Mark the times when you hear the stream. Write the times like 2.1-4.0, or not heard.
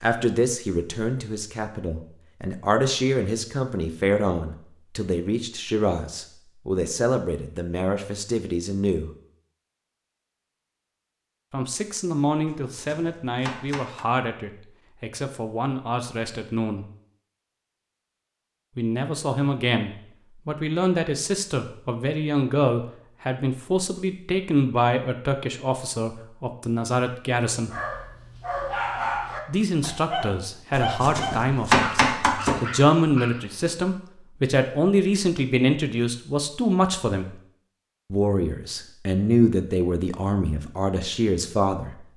not heard.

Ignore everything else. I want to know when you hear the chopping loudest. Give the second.
32 s.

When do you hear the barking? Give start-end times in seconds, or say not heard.
27.6-33.8.